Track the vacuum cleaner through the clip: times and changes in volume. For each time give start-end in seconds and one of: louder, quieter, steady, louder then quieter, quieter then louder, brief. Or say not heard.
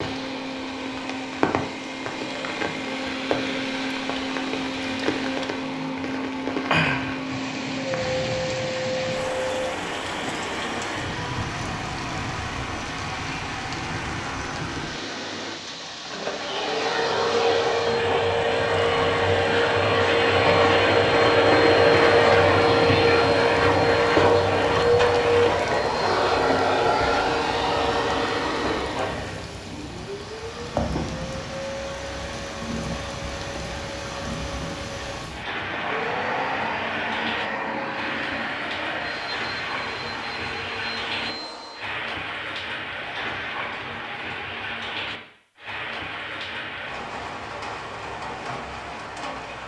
0.0-42.0 louder then quieter.